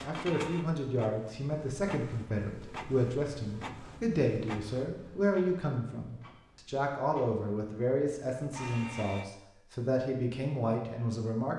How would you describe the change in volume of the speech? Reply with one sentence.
The loudness of the speech stays about the same.